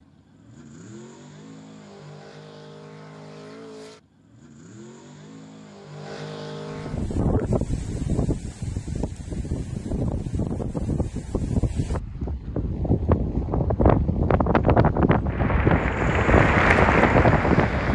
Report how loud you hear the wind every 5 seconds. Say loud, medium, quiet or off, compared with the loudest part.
off, medium, loud, loud.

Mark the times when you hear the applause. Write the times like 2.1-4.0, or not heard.
15.2-17.8.